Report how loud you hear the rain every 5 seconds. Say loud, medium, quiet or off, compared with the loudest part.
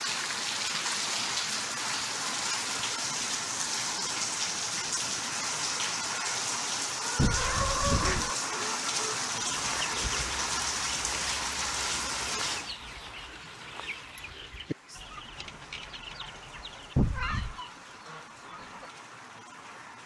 loud, loud, loud, quiet.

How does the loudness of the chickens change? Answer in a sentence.
The loudness of the chickens goes down.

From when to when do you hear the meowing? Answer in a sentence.
You can hear the meowing from 7.2 to 8.3 s and from 16.9 to 17.6 s.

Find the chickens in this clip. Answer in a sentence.
The chickens can be heard from 7.0 to 18.9 s.